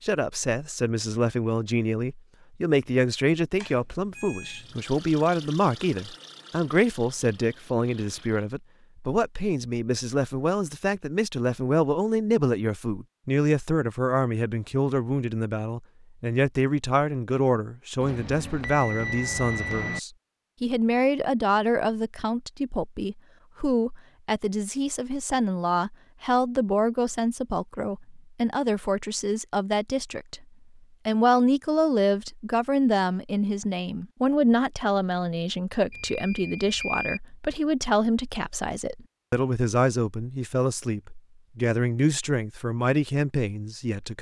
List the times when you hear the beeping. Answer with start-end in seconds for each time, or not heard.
3.5-4.7, 18.0-20.0, 35.9-37.2.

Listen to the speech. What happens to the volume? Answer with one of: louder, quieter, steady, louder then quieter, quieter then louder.
steady.